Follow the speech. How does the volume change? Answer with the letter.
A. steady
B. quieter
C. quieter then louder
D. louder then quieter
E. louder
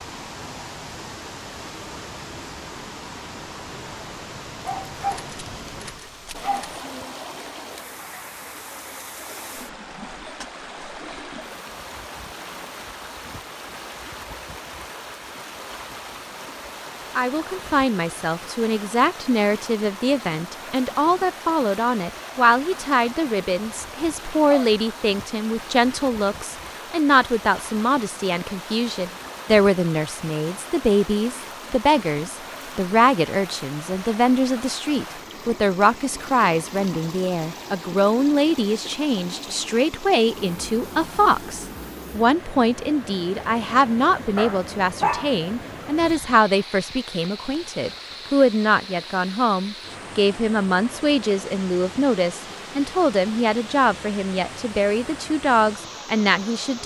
A.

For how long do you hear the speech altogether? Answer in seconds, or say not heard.
40 s.